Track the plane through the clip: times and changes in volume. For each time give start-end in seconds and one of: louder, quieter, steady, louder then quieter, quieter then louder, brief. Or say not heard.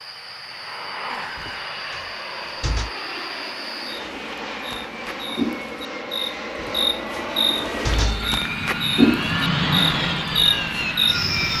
0.0-11.5 louder.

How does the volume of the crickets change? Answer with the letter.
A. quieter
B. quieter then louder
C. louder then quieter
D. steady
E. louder
E.